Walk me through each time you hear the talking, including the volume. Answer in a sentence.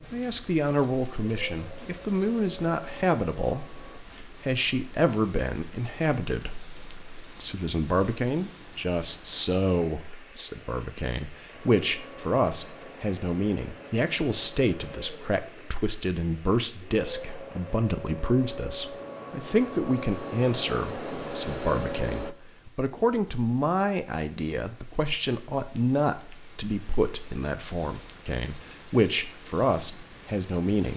The talking can be heard from 0.1 to 30.9 s, at a steady volume.